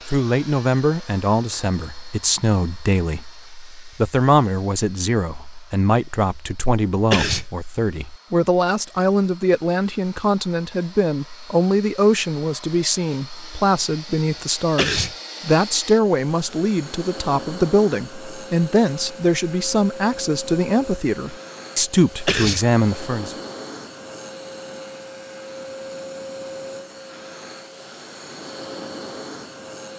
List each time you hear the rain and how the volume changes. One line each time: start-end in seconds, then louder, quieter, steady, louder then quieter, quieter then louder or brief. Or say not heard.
not heard.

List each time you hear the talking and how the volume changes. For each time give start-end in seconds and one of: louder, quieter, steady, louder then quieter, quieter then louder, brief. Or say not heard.
0.1-23.4 steady.